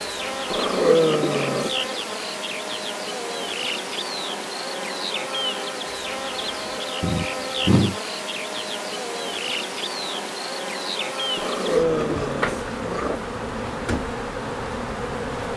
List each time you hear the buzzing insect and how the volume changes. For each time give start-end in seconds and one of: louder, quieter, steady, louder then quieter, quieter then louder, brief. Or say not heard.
0.0-15.5 steady.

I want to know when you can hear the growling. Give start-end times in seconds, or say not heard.
0.5-1.9, 7.0-8.0, 11.3-13.2.